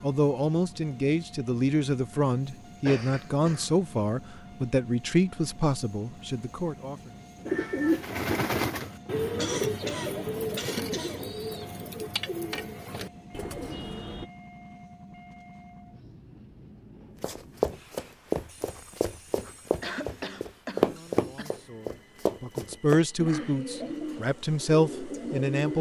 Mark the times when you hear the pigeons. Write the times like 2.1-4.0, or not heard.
7.5-14.3, 23.1-25.7.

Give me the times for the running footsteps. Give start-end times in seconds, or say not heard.
17.2-23.1.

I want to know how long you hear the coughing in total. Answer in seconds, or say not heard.
5 s.